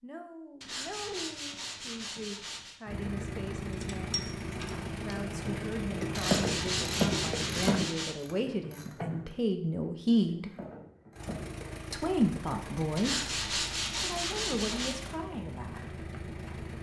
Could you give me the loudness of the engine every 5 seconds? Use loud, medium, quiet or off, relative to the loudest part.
loud, loud, medium, medium.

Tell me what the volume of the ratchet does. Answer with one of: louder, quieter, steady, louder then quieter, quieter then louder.
louder then quieter.